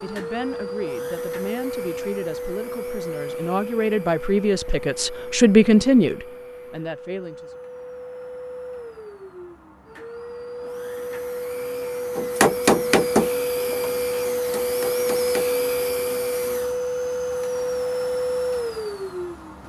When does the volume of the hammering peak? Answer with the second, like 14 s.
13 s.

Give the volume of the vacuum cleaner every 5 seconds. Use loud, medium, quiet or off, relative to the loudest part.
medium, quiet, loud, loud.